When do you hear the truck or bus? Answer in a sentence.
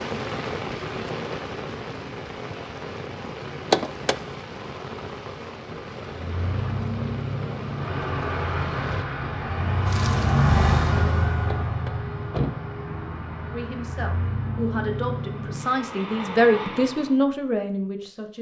The truck or bus can be heard from 6.1 to 17.1 s.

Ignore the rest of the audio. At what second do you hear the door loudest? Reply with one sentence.
The loudest moment of the door is at 4 seconds.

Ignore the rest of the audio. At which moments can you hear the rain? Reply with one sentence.
You can hear the rain from 0.0 to 10.3 s.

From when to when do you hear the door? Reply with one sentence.
The door can be heard from 3.7 to 4.2 s and from 11.4 to 12.7 s.